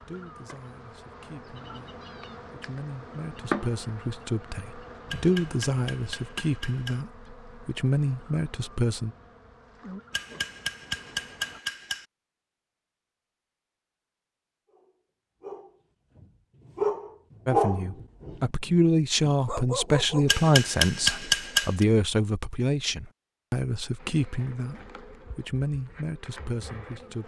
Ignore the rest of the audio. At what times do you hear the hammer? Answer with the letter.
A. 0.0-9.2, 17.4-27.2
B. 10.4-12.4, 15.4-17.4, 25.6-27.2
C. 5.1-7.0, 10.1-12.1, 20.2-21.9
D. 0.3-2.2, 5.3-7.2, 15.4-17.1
C.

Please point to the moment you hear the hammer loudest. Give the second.
21 s.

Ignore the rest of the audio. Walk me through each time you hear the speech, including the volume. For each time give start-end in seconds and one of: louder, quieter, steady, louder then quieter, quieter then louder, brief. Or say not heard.
0.0-9.2 louder
17.4-27.2 quieter.